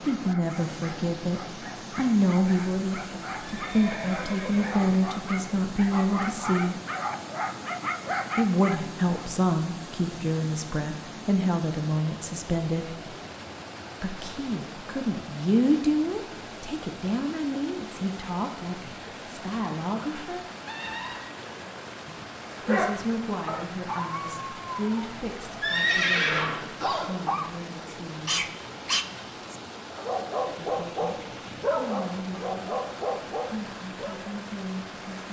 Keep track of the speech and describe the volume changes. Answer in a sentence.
The volume of the speech goes down.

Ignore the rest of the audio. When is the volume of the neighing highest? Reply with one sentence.
The volume of the neighing peaks at 26 seconds.